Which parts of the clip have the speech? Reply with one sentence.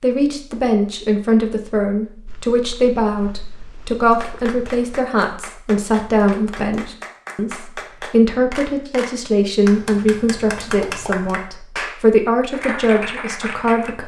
You can hear the speech from 0.0 to 14.0 s.